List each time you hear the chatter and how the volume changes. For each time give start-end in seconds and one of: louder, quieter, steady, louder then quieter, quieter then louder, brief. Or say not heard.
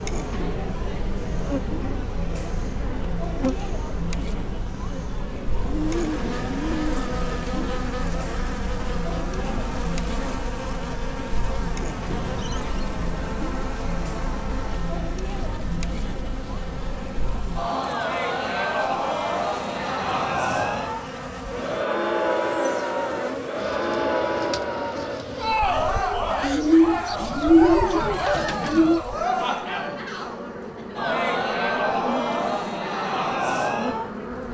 0.0-34.4 louder.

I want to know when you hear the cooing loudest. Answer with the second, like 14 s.
28 s.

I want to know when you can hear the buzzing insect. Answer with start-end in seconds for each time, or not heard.
0.0-34.4.